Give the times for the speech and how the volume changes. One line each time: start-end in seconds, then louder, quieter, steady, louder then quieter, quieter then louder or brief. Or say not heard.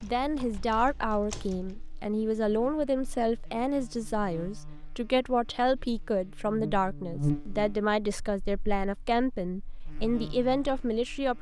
0.0-11.3 steady.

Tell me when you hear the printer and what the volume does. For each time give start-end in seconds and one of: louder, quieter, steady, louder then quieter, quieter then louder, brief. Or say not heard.
not heard.